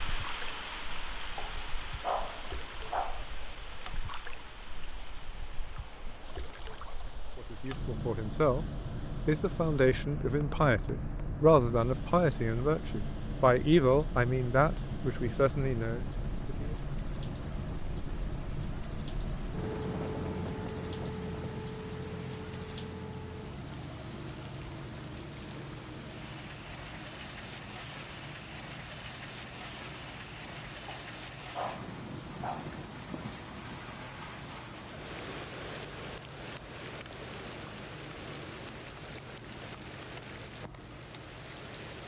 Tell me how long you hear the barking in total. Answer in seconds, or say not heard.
4 s.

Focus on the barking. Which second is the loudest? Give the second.
2 s.